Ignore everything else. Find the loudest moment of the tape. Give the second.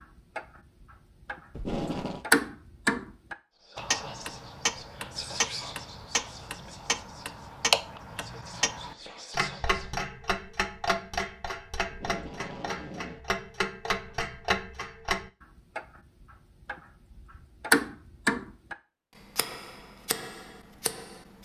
2 s.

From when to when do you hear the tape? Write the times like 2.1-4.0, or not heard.
1.5-2.2, 11.9-13.2.